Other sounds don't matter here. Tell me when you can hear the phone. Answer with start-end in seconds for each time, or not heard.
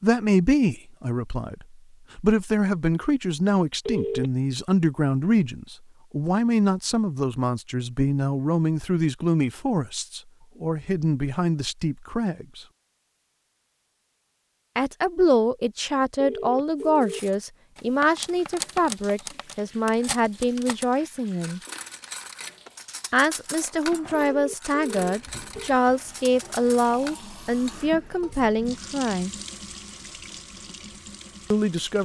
3.9-4.3, 16.1-17.2, 24.1-25.7.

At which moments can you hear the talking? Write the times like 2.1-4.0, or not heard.
0.0-12.7, 14.8-21.6, 23.1-29.3, 31.5-32.0.